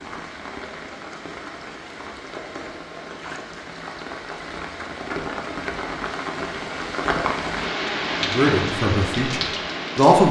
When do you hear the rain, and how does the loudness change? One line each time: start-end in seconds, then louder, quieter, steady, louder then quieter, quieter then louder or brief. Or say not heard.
0.0-10.2 louder.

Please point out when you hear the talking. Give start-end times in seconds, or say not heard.
8.2-10.2.